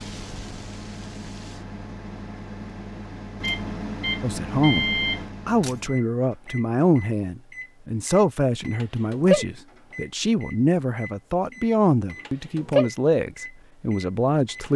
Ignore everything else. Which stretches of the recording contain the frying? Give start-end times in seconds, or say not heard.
0.0-1.6.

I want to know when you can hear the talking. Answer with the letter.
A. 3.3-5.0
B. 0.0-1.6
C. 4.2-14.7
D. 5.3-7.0
C.